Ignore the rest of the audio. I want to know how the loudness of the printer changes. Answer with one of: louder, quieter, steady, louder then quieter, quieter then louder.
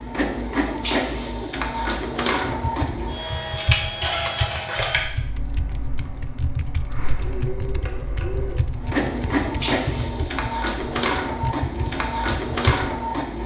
quieter then louder.